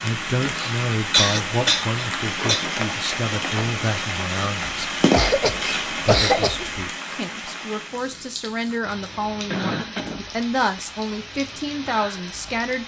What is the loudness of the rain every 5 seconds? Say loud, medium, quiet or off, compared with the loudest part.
loud, loud, medium.